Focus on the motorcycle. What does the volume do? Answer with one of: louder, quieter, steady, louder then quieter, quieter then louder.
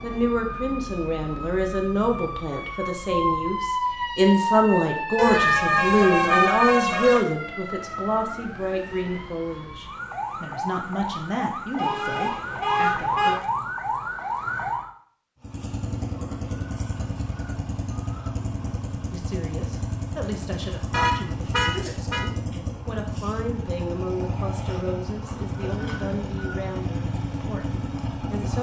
steady.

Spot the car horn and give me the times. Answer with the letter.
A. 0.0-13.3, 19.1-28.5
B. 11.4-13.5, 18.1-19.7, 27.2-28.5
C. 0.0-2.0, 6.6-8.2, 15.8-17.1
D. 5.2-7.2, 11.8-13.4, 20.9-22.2
D.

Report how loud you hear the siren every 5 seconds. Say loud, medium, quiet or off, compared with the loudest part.
loud, loud, loud, off, off, off.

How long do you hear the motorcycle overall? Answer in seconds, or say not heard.
13 s.